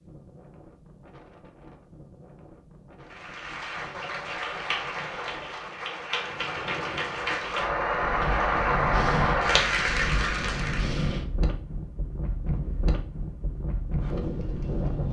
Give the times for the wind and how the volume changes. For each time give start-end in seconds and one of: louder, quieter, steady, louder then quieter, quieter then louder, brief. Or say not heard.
0.0-15.0 louder.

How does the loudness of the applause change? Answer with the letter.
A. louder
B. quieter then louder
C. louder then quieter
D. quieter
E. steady
A.